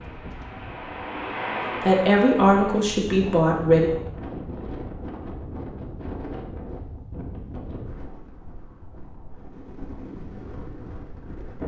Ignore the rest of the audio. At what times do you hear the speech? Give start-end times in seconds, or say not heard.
1.8-3.9.